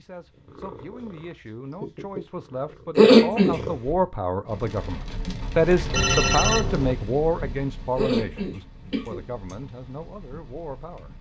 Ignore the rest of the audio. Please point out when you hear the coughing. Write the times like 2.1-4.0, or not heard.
3.0-3.5, 8.0-9.2.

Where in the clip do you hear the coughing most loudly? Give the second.
3 s.